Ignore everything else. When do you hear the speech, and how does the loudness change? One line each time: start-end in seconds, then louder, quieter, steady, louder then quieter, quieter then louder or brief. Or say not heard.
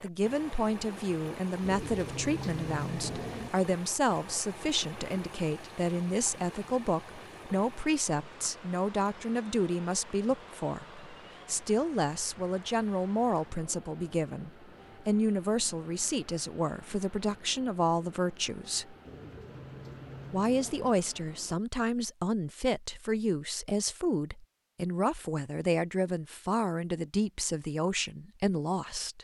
0.0-18.9 steady
20.3-29.2 steady.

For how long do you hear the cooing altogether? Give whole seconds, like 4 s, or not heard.
4 s.